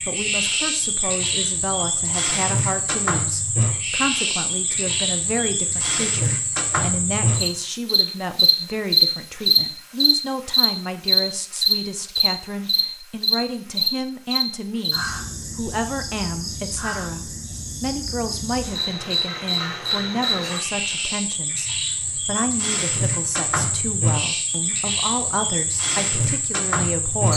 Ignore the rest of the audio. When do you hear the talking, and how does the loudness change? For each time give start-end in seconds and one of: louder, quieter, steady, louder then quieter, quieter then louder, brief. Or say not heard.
0.1-27.3 steady.